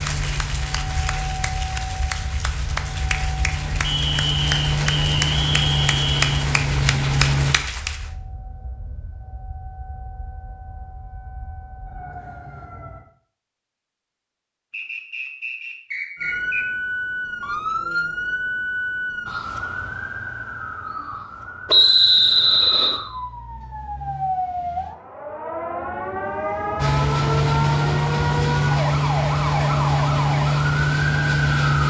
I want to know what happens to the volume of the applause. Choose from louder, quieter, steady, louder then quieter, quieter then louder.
louder.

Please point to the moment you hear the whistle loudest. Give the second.
22 s.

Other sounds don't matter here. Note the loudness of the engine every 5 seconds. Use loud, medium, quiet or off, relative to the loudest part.
medium, loud, off, off, off, loud, loud.